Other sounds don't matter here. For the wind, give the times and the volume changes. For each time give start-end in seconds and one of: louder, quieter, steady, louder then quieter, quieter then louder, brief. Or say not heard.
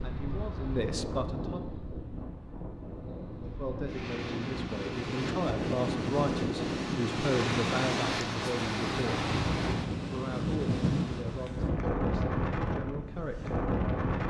0.0-14.2 louder.